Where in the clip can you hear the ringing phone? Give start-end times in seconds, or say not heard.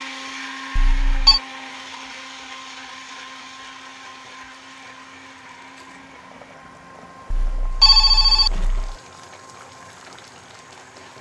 0.8-1.4, 7.3-8.9.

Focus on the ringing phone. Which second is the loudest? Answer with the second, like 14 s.
8 s.